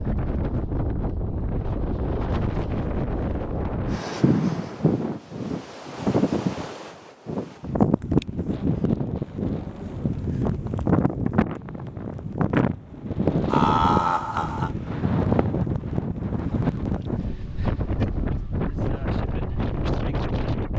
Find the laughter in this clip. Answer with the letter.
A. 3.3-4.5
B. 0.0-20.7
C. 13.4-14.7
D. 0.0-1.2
C.